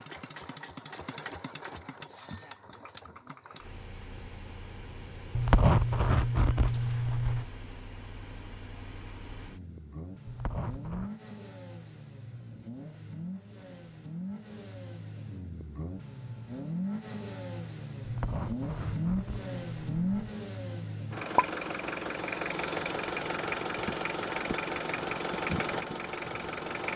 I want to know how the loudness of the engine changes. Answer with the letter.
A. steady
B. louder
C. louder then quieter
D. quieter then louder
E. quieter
B.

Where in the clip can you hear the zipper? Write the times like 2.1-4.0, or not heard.
5.3-7.5, 10.2-11.1, 18.1-20.3.